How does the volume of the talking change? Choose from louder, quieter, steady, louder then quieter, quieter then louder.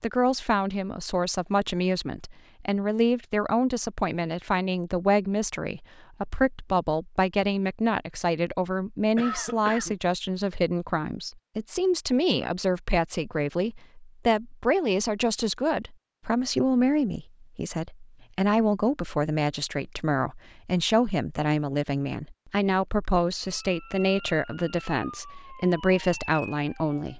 steady.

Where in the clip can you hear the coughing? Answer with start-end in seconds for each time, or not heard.
9.2-9.9.